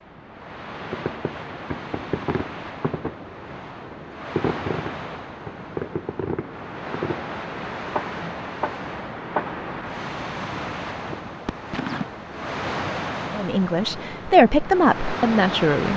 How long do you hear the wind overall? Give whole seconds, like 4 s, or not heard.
16 s.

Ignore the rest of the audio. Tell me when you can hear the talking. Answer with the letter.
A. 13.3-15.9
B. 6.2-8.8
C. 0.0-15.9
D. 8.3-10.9
A.